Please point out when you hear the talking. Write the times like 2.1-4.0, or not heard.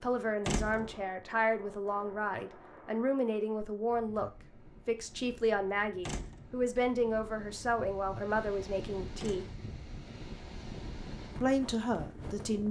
0.0-9.4, 11.4-12.6.